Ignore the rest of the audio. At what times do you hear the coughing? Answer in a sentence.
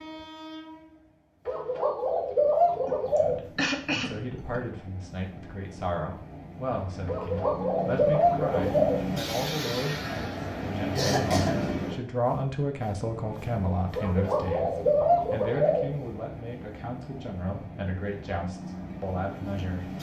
You can hear the coughing from 2.9 to 4.6 s and from 10.9 to 11.6 s.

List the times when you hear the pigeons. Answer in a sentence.
You can hear the pigeons from 1.4 to 3.4 s, from 7.0 to 9.0 s and from 13.9 to 15.9 s.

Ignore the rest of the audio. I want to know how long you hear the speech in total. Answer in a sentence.
You can hear the speech for 17 seconds altogether.